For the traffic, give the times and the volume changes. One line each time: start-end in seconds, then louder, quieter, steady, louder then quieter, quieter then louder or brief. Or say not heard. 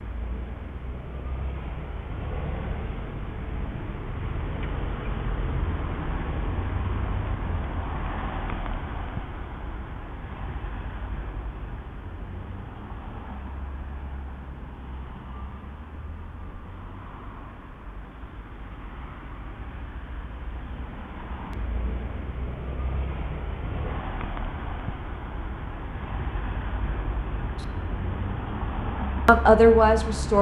0.0-30.3 quieter then louder.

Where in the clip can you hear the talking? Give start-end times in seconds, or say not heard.
29.2-30.3.